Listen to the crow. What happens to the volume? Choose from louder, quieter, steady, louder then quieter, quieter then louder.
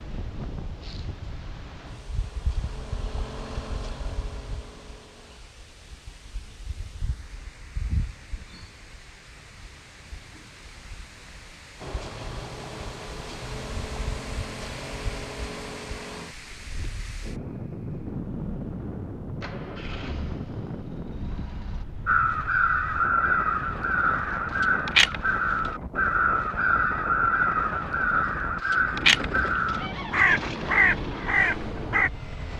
steady.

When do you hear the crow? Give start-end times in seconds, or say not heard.
22.1-32.1.